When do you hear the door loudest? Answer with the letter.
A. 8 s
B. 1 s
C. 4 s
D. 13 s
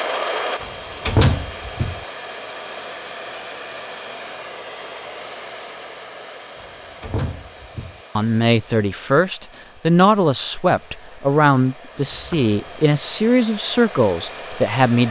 B.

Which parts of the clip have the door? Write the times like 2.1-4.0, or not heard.
0.6-2.0, 6.5-8.0, 12.1-12.5.